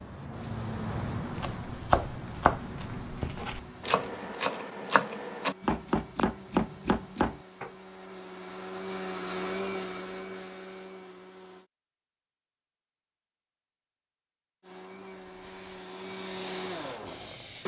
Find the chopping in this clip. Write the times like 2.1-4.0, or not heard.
1.2-7.7.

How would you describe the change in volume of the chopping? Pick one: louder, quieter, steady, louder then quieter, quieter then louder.
quieter then louder.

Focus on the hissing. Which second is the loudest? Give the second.
1 s.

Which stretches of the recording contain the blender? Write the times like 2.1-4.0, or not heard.
0.2-11.7, 14.6-17.6.